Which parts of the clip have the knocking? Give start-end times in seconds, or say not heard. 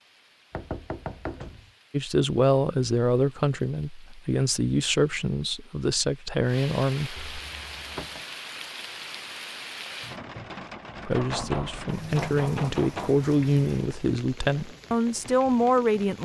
0.5-1.7, 7.2-8.2, 11.2-13.2.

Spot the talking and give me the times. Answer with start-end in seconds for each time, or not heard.
1.9-7.2, 11.1-16.2.